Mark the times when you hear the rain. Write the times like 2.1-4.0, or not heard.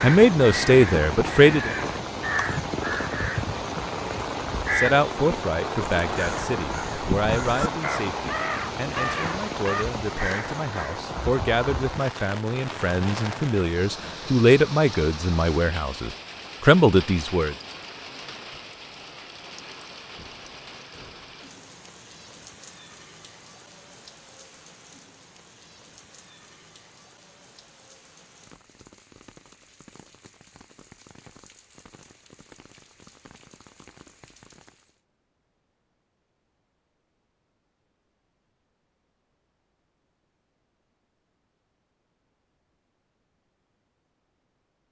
0.0-35.0.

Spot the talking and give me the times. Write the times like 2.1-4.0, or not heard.
0.0-1.7, 4.8-17.6.